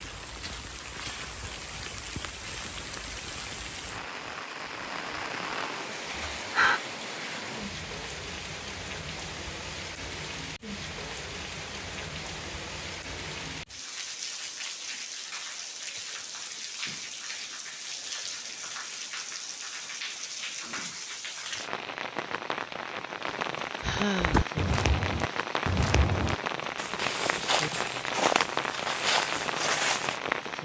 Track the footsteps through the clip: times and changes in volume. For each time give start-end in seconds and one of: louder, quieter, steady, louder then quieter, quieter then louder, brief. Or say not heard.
24.2-30.2 steady.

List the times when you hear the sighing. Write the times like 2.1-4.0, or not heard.
5.7-6.8, 23.8-24.5.